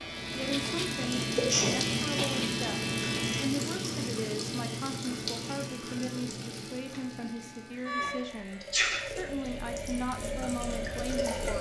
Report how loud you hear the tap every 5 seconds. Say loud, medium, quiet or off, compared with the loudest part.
loud, medium, loud.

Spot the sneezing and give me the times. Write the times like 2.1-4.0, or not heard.
1.2-2.4, 8.2-9.7.